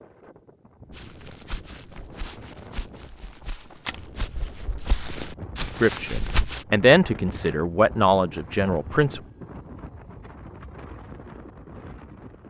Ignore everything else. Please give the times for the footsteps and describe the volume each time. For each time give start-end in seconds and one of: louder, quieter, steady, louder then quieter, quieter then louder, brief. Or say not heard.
0.9-6.7 louder.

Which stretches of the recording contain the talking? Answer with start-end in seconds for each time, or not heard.
5.8-9.2.